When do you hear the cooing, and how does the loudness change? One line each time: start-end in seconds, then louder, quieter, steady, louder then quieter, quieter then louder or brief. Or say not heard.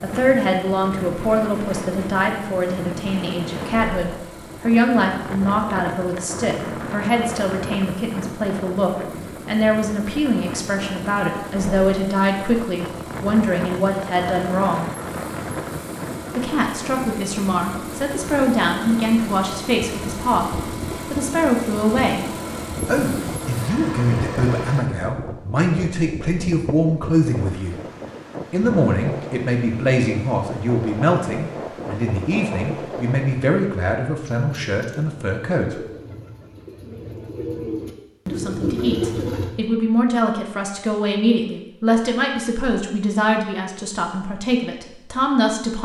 34.2-39.5 louder.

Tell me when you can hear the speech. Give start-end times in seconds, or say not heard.
0.0-14.9, 16.3-27.8, 28.5-35.8, 38.2-45.8.